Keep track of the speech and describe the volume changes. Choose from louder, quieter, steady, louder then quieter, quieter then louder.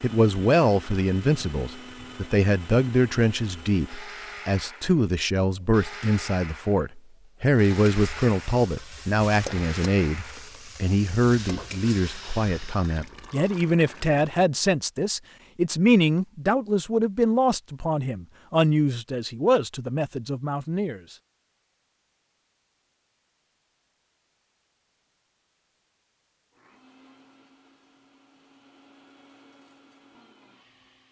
steady.